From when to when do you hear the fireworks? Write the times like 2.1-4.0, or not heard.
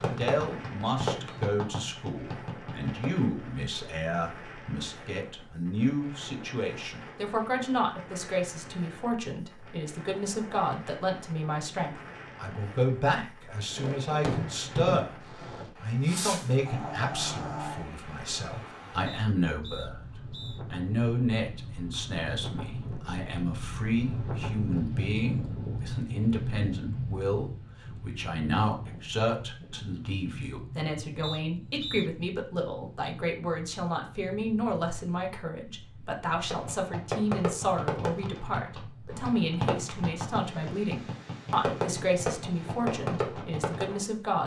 0.0-3.1, 13.7-17.9, 36.4-43.9.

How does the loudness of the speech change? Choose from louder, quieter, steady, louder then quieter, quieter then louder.
steady.